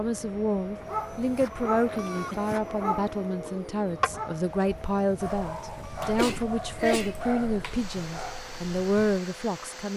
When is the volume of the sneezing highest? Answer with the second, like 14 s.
7 s.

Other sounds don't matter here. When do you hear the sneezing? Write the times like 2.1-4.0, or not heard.
1.6-2.4, 6.2-7.2.